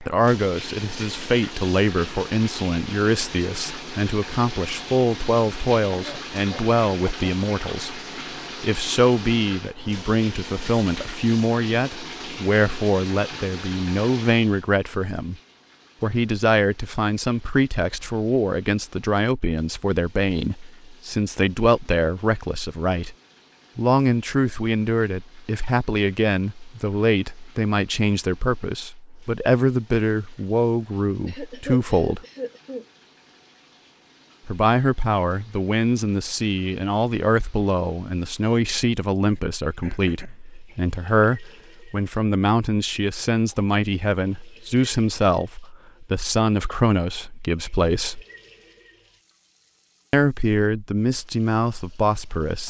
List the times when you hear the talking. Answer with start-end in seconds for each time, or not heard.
0.0-8.0, 8.6-15.3, 16.0-23.1, 23.8-32.2, 34.5-48.2, 50.1-52.6.